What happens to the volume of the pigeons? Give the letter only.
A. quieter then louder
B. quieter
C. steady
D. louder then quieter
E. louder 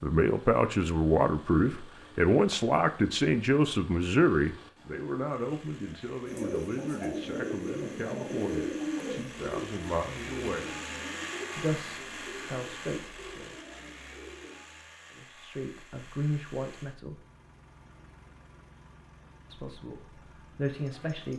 B.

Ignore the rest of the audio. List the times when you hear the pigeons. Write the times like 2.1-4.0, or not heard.
6.2-14.7.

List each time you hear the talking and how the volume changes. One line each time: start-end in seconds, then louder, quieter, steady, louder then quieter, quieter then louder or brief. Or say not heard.
0.0-10.8 quieter
11.6-13.6 brief
15.2-17.2 brief
19.5-21.3 brief.